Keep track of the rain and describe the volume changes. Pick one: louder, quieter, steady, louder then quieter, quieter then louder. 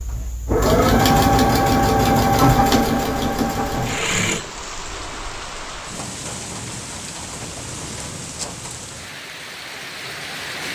steady.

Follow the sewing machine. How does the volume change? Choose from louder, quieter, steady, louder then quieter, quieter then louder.
quieter.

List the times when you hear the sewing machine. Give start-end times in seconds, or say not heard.
0.0-5.4.